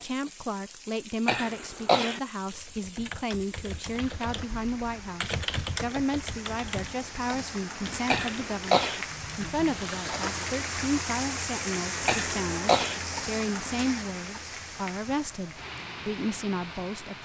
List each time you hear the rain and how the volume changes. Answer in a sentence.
You can hear the rain from 0.0 to 17.2 s, getting louder then quieter.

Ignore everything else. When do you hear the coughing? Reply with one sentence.
You can hear the coughing from 1.2 to 2.2 s, from 8.1 to 9.1 s and from 12.1 to 13.0 s.